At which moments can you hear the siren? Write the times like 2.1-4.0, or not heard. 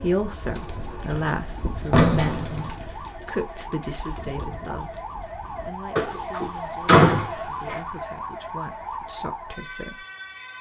0.0-10.5.